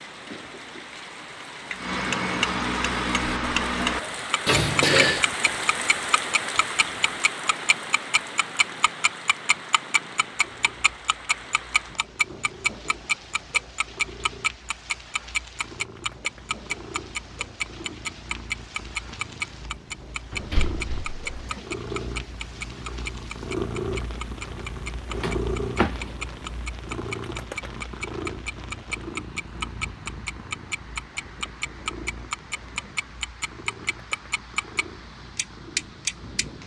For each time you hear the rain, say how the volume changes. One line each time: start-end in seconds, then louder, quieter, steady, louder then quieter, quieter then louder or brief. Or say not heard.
0.0-36.6 quieter.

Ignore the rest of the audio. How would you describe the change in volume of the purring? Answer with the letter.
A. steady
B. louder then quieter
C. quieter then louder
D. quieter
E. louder
B.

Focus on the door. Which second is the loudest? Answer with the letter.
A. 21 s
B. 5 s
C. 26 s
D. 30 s
B.